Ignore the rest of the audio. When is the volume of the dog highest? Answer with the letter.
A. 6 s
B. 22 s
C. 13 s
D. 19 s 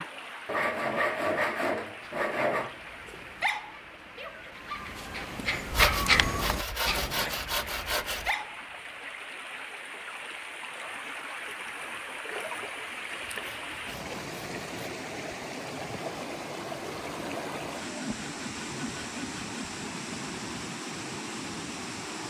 A.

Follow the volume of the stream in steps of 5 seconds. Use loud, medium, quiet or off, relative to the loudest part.
medium, medium, loud, loud, loud.